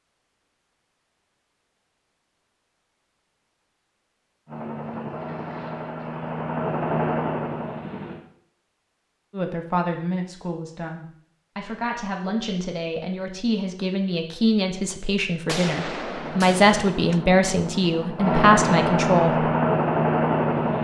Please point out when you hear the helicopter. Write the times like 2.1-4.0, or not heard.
4.5-8.2, 16.1-20.7.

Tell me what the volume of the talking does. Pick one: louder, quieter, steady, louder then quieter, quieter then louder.
louder.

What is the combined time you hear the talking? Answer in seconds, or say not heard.
10 s.